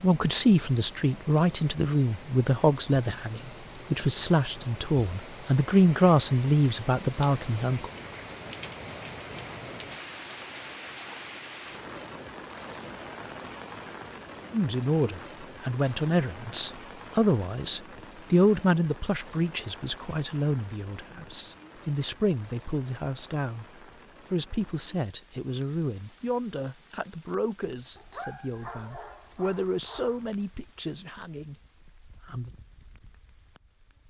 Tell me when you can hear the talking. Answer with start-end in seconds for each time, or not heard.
0.0-7.9, 14.5-23.6, 24.3-32.5.